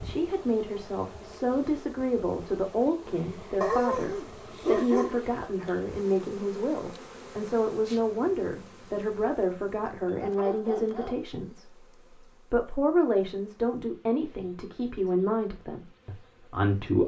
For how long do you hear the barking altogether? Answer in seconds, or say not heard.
3 s.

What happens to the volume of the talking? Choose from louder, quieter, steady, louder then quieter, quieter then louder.
steady.